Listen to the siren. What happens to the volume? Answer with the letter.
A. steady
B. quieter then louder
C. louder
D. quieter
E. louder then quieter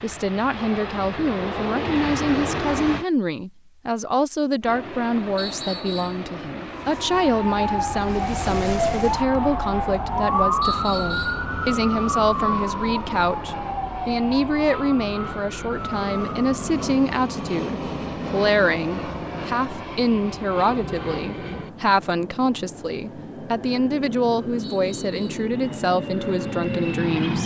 D.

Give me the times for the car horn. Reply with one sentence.
The car horn can't be heard in this clip.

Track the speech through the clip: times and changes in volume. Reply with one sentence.
You can hear the speech from 0.0 to 27.4 s, at a steady volume.